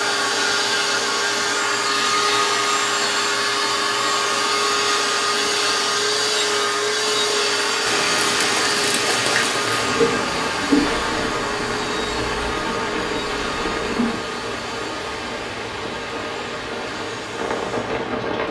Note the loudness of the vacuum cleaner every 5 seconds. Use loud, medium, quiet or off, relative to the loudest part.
loud, loud, medium, quiet.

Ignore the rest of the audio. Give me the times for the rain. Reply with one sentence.
You can hear the rain from 7.8 to 18.4 s.